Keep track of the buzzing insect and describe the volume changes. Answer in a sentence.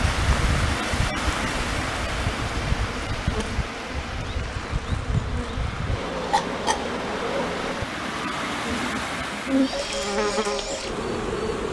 The volume of the buzzing insect goes up.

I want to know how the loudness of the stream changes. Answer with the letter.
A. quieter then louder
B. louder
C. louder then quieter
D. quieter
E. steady
A.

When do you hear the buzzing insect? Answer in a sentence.
You can hear the buzzing insect from 0.0 to 11.6 s.